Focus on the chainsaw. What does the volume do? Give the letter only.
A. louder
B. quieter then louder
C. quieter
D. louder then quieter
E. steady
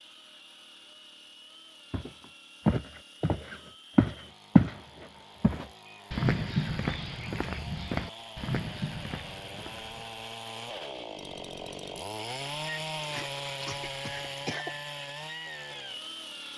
A.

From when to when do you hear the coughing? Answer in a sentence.
The coughing can be heard from 13.0 to 14.8 s.